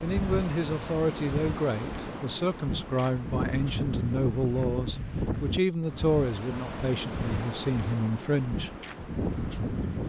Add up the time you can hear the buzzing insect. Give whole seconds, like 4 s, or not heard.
not heard.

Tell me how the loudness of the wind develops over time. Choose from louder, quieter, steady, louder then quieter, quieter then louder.
steady.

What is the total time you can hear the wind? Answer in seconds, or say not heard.
10 s.